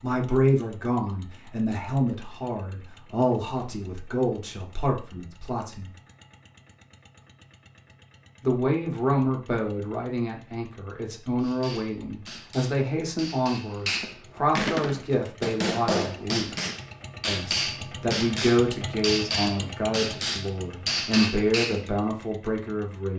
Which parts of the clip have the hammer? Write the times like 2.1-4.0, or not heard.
11.4-21.9.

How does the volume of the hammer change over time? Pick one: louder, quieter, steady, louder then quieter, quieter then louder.
louder.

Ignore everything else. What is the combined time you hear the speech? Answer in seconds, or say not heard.
20 s.